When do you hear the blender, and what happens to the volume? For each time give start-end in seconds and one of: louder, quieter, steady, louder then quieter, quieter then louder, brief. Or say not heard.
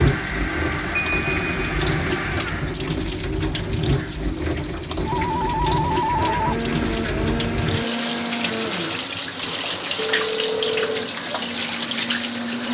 0.0-2.8 brief
6.0-12.6 quieter.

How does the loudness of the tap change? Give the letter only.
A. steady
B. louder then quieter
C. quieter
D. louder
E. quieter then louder
A.